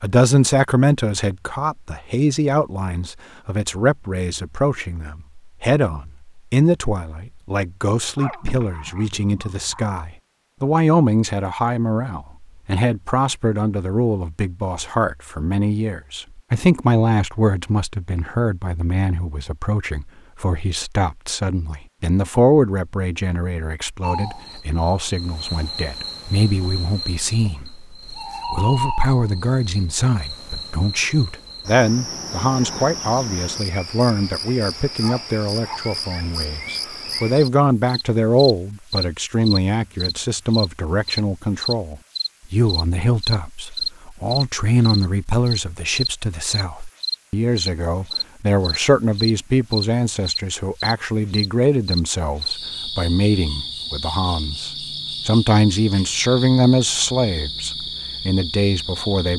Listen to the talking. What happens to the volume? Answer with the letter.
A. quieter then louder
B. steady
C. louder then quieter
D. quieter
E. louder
B.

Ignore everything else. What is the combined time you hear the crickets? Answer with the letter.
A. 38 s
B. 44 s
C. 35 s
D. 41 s
C.